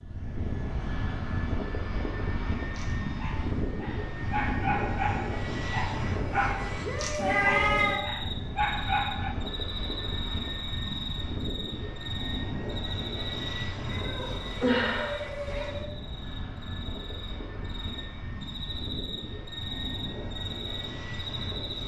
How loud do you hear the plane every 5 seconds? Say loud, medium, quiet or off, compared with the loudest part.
loud, loud, loud, medium, medium.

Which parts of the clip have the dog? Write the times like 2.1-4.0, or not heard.
2.8-9.3.